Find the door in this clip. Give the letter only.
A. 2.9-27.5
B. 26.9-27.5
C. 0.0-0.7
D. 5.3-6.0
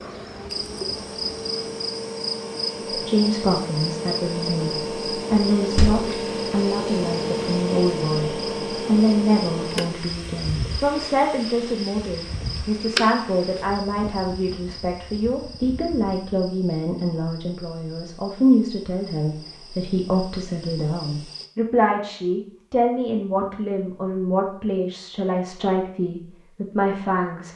D.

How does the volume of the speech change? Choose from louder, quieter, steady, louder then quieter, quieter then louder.
steady.